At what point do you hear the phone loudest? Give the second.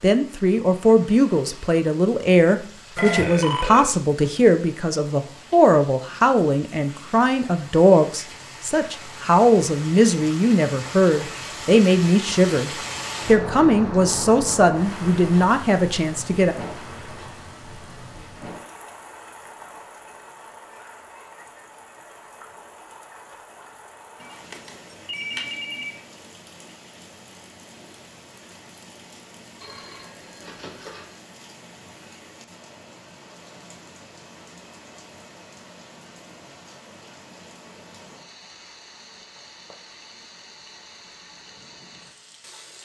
3 s.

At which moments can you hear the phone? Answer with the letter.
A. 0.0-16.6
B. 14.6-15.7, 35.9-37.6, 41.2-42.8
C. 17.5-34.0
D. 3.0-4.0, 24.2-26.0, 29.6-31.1
D.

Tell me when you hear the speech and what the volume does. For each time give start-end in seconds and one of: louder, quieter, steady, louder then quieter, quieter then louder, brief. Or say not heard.
0.0-16.6 steady.